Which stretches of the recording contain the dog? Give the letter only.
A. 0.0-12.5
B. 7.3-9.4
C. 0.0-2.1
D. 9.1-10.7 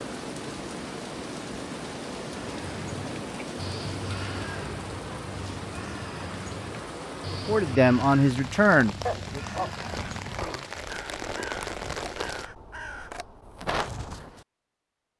D.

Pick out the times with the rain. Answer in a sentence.
The rain can be heard from 0.0 to 12.5 s.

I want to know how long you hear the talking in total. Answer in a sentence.
You can hear the talking for 2 seconds altogether.